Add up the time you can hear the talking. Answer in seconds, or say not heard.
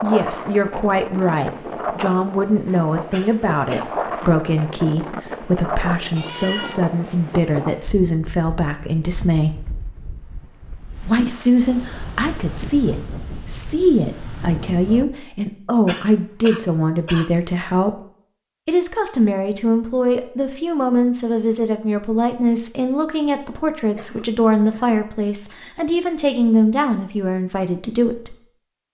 26 s.